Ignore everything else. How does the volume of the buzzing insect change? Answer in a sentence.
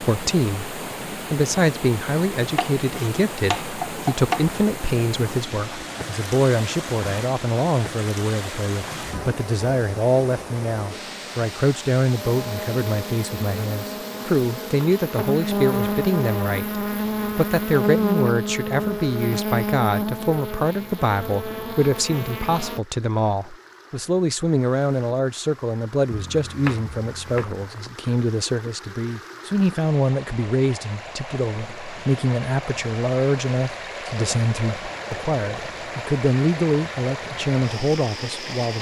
The loudness of the buzzing insect goes up, then down.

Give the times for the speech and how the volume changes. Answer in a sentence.
You can hear the speech from 0.0 to 38.7 s, at a steady volume.